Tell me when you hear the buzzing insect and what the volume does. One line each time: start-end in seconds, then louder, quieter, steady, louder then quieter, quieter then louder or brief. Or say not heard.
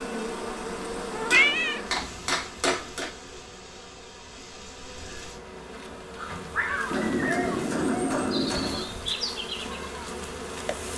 0.0-10.9 quieter then louder.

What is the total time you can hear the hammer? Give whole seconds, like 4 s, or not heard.
4 s.